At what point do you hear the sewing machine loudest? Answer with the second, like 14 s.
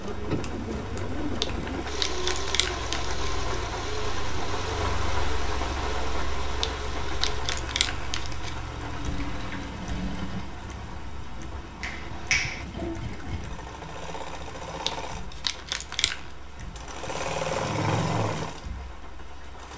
18 s.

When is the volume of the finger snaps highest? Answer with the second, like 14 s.
12 s.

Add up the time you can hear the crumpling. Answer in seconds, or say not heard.
5 s.